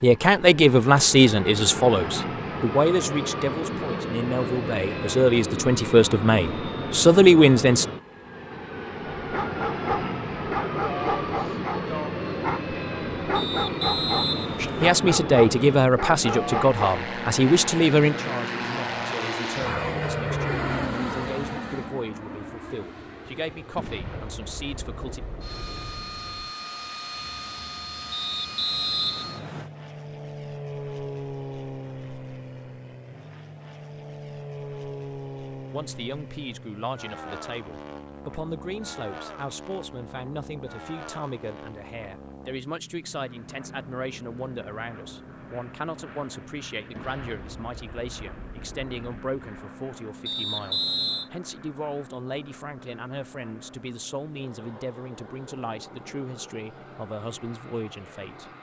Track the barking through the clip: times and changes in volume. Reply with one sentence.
The barking can be heard from 9.2 to 16.8 s, at a steady volume.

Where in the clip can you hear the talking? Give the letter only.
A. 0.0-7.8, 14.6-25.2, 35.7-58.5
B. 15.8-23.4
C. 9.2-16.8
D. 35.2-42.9
A.